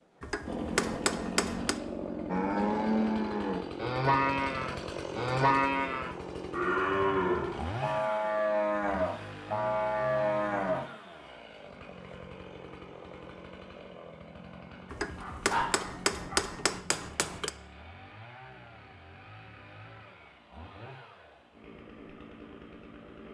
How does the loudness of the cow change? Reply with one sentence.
The loudness of the cow stays about the same.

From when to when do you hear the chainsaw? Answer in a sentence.
The chainsaw can be heard from 0.4 to 23.2 s.